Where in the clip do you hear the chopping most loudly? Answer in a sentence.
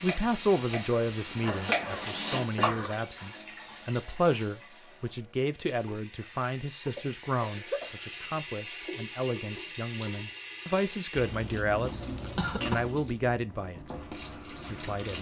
The volume of the chopping peaks at 2 seconds.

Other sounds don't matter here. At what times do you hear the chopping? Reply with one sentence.
You can hear the chopping from 0.0 to 2.7 s.